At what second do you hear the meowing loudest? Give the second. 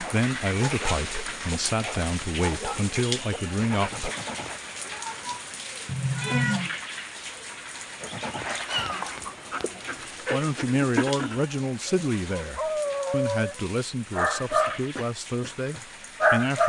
6 s.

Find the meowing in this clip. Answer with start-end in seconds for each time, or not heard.
5.8-6.8, 8.7-10.1.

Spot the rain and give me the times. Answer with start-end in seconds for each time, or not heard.
0.0-16.6.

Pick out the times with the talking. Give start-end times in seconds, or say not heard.
0.0-4.1, 10.3-16.6.